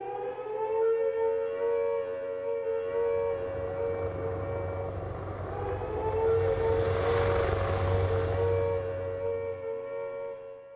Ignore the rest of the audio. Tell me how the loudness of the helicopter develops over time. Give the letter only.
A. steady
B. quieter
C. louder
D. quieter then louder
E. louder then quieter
E.